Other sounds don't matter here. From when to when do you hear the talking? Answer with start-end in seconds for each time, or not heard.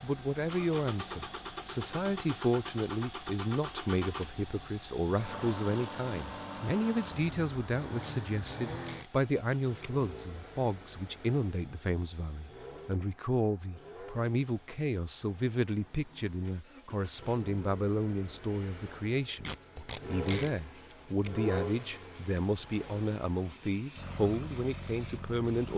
0.0-25.7.